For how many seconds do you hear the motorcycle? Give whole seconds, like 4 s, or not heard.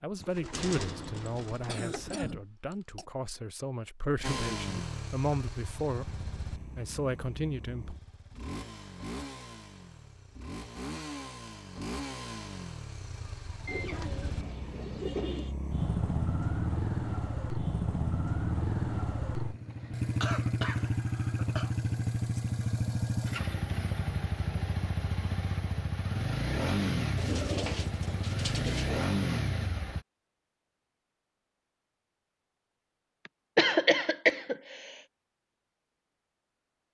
26 s.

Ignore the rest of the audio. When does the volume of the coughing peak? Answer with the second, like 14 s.
34 s.